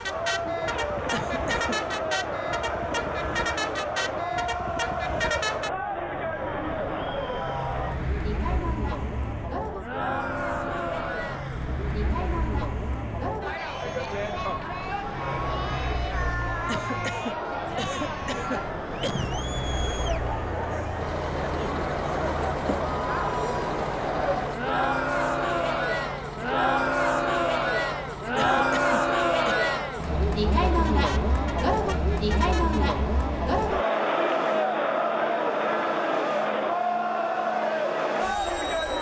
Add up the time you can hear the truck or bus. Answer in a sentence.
The truck or bus can be heard for 39 seconds in total.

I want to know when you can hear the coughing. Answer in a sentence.
You can hear the coughing from 1.1 to 1.8 s, from 16.6 to 19.4 s and from 28.4 to 29.6 s.